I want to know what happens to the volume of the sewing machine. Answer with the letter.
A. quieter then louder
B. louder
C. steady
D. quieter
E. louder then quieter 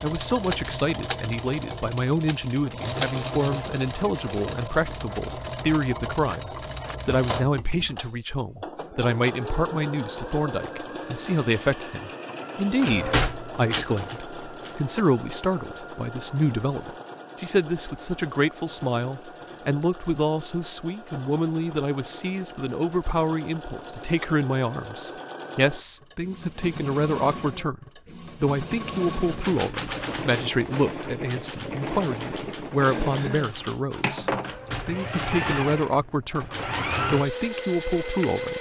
A.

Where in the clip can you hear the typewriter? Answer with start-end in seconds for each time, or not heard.
12.8-14.8, 29.2-37.4.